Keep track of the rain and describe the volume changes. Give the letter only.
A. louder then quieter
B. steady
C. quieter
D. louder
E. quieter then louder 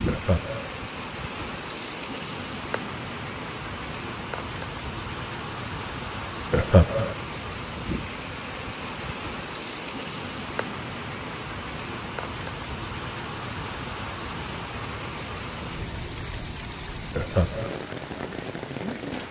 B.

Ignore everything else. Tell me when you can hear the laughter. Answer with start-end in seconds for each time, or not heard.
0.1-0.7, 6.5-7.2, 17.1-17.8.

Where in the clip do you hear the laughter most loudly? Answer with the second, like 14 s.
7 s.